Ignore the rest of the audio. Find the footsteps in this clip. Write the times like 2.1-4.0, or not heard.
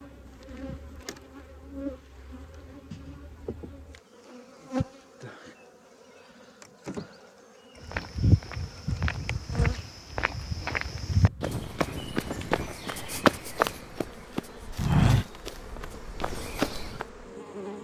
7.8-17.1.